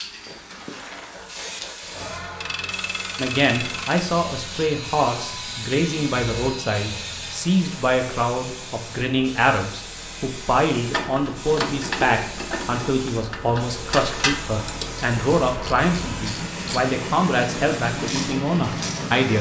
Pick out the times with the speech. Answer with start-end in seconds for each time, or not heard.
3.1-19.3.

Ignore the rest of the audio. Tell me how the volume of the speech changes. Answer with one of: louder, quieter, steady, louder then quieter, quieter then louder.
steady.